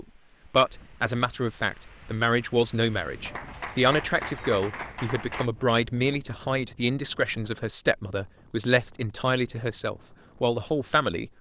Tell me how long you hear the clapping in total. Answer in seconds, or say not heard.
2 s.